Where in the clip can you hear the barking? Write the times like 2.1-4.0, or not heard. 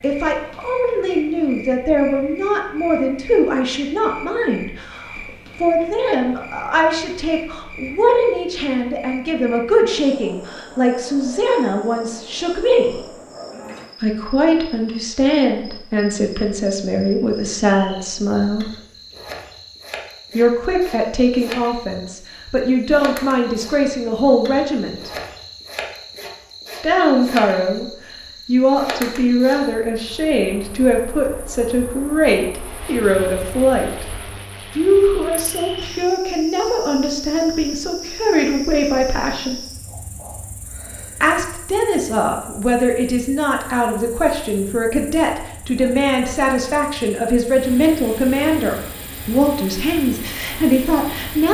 not heard.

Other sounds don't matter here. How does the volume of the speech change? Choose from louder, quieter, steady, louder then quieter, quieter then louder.
steady.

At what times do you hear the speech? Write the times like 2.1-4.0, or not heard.
0.0-13.1, 14.0-18.7, 20.3-25.1, 26.8-34.0, 34.8-39.6, 41.2-51.5.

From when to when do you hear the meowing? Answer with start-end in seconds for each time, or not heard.
not heard.